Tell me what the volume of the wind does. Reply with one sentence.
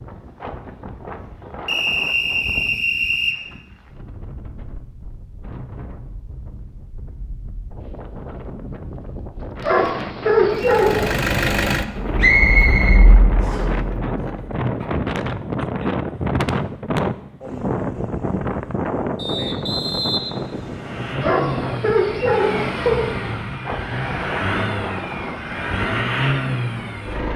The loudness of the wind goes up, then down.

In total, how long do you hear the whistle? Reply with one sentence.
You can hear the whistle for 5 seconds altogether.